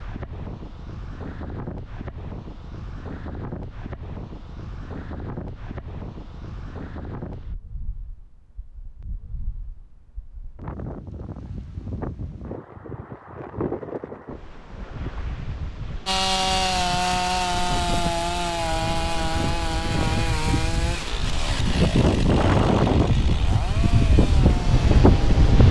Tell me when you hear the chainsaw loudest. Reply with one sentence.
The loudest moment of the chainsaw is at 17 seconds.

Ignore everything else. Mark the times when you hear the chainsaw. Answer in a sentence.
The chainsaw can be heard from 16.1 to 25.5 s.